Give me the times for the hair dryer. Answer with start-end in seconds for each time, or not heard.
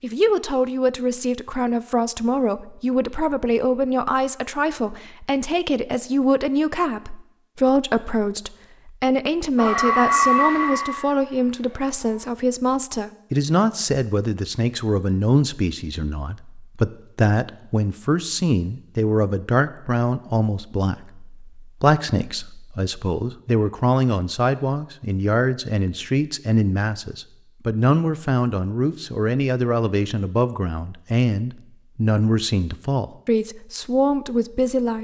9.6-12.3.